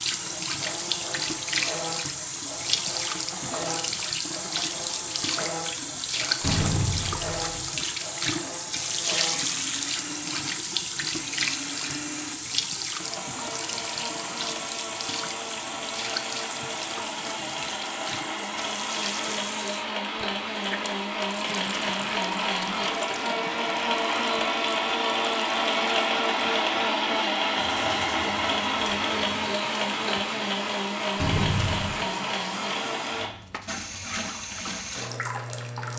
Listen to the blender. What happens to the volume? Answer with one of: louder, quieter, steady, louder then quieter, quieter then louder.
louder.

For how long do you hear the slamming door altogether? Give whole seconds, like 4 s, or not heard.
2 s.